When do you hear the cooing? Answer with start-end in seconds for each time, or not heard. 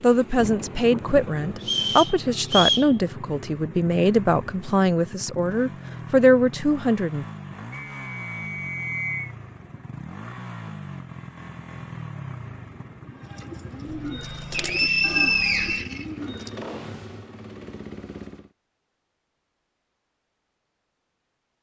13.1-16.6.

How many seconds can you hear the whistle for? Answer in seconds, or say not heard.
5 s.